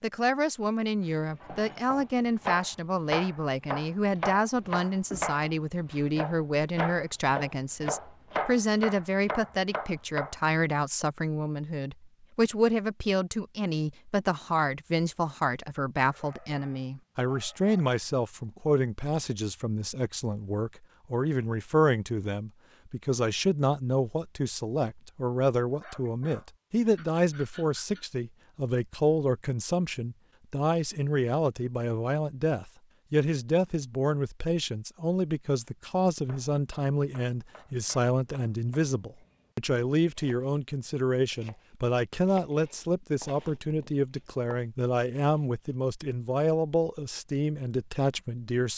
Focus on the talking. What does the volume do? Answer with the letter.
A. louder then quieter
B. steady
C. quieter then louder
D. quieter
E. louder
B.